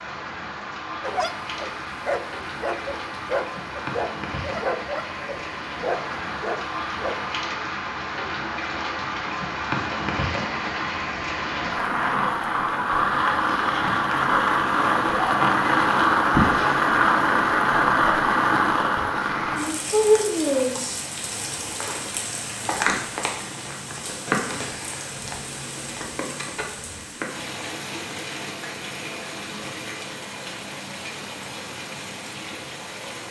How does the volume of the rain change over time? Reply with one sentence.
The loudness of the rain goes up, then down.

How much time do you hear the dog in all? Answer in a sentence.
You can hear the dog for 6 seconds altogether.